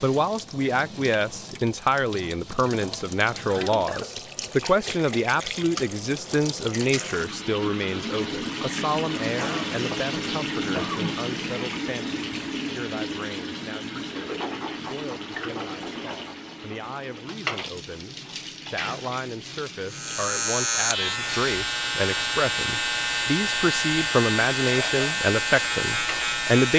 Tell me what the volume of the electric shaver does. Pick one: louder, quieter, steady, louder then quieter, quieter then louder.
steady.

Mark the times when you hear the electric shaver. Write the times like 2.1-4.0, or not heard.
19.9-26.7.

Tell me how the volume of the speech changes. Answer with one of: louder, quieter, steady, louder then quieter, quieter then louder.
quieter then louder.